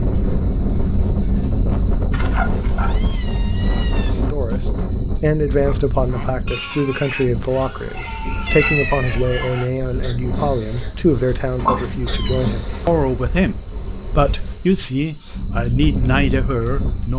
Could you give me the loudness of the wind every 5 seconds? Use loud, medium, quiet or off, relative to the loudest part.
loud, medium, medium, loud.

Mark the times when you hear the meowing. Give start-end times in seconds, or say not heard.
2.1-4.1, 8.4-9.5, 11.7-13.6.